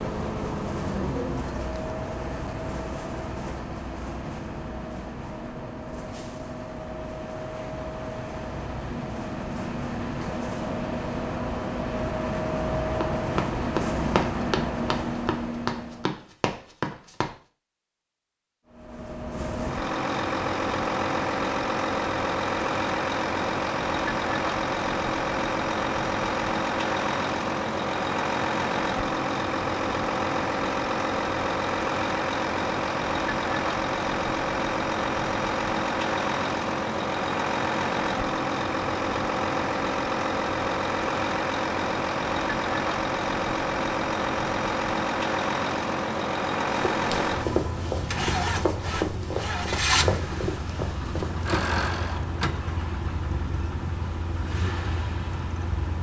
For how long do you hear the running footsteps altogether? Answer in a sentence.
You can hear the running footsteps for 9 seconds altogether.